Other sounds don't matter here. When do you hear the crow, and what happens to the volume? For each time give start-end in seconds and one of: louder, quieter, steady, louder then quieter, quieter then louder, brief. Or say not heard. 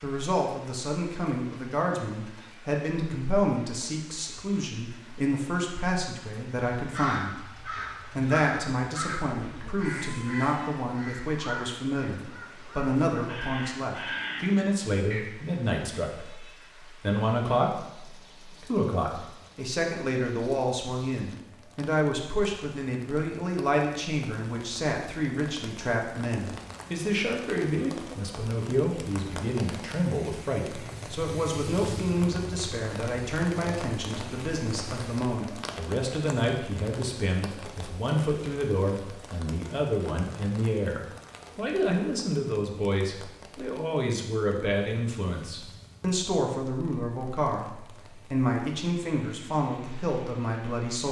6.8-15.2 quieter then louder.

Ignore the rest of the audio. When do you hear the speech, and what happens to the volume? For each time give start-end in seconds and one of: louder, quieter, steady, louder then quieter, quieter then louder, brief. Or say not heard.
0.0-51.0 steady.